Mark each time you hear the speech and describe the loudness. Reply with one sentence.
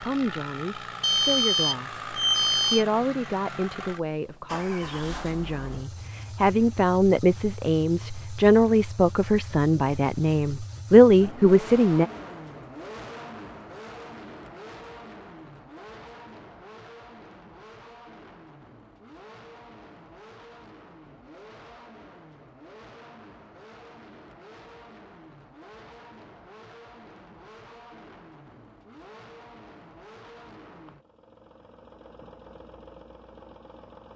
The speech can be heard from 0.0 to 12.1 s, getting louder.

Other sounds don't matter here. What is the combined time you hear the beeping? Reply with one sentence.
You can hear the beeping for 2 seconds altogether.